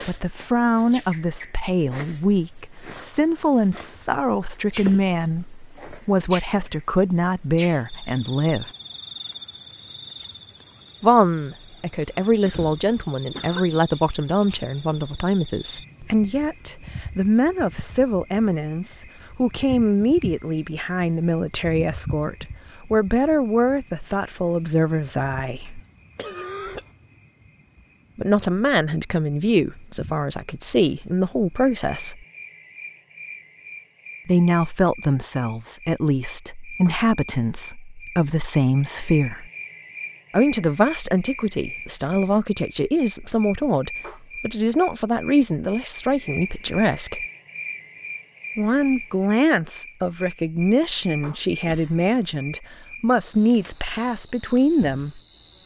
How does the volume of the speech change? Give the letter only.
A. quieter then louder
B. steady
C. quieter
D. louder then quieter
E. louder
B.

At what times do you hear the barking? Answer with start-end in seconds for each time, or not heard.
not heard.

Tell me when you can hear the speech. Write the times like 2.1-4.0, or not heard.
0.1-8.7, 11.0-25.8, 28.1-32.2, 34.2-39.5, 40.3-47.2, 48.5-55.2.